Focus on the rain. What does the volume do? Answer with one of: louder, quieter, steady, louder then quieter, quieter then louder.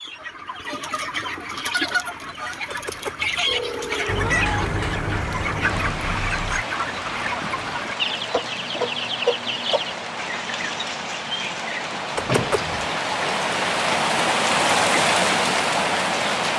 louder.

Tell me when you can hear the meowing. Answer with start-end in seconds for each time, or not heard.
2.6-4.6, 12.2-12.9.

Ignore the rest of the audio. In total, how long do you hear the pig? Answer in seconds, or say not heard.
not heard.